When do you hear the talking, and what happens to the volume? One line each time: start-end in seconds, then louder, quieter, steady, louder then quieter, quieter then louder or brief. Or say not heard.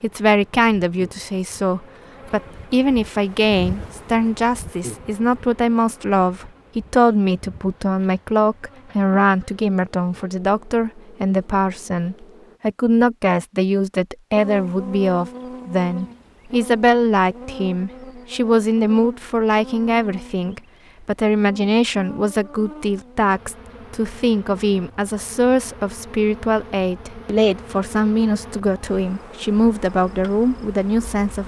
0.0-31.4 steady.